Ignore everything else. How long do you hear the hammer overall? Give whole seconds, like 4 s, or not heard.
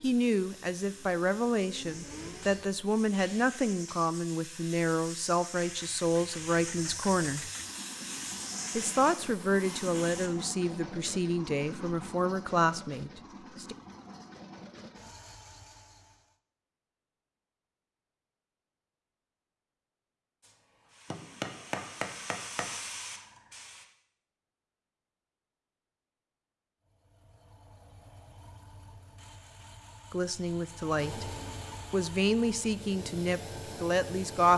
3 s.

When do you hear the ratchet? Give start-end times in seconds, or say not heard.
not heard.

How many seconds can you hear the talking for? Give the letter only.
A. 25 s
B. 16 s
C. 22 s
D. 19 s
B.